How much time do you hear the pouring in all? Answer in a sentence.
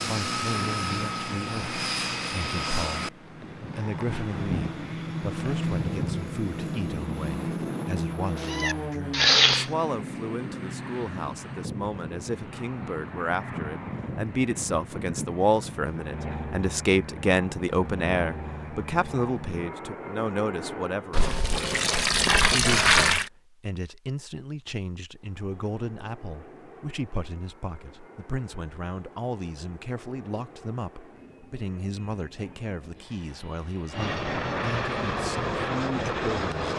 The pouring can be heard for 2 seconds in total.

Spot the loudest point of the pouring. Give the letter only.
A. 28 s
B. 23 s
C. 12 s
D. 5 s
B.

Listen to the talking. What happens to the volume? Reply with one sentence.
The volume of the talking goes up, then down.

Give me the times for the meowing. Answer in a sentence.
The meowing can be heard from 8.4 to 9.7 s.